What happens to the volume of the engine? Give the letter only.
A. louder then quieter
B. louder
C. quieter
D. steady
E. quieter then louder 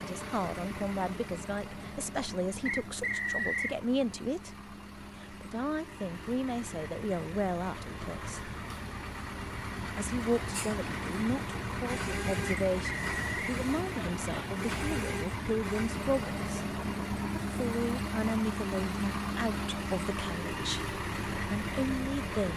B.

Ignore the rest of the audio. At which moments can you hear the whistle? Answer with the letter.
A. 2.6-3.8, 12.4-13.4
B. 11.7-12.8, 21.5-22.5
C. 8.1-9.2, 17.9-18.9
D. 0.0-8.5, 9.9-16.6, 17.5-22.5
A.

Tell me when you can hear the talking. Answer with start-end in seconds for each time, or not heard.
0.0-8.5, 9.9-16.6, 17.5-22.5.